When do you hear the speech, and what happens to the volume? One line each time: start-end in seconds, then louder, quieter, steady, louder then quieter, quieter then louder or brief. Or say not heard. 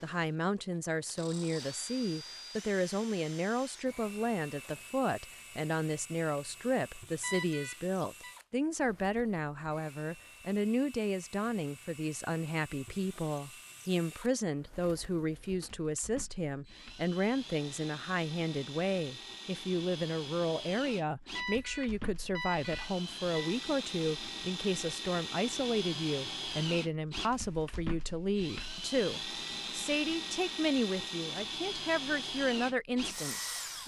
0.0-33.8 steady.